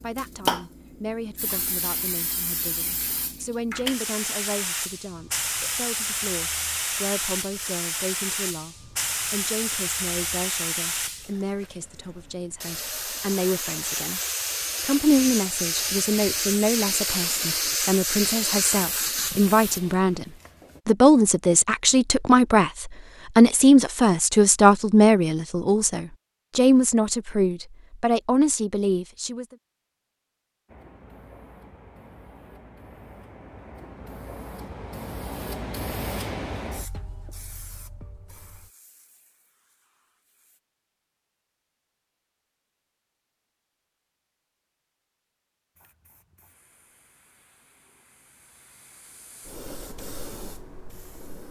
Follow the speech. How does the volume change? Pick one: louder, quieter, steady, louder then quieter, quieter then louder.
louder.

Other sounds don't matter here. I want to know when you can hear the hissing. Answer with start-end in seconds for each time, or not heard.
0.0-20.8, 30.6-40.6, 45.8-51.4.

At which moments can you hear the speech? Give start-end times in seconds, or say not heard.
0.0-14.2, 14.8-29.4.